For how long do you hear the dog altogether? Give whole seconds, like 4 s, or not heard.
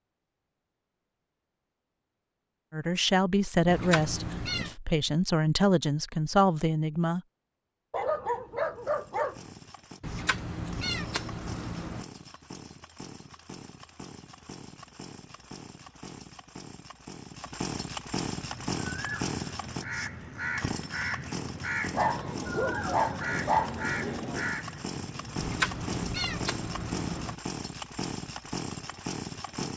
4 s.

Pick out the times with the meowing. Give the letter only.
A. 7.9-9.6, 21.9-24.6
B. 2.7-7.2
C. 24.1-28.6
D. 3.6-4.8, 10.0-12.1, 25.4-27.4
D.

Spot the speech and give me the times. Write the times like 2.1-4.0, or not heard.
2.7-7.2.